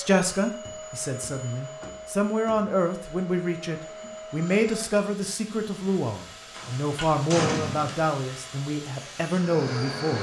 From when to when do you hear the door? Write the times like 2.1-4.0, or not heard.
0.6-2.6, 6.5-8.1.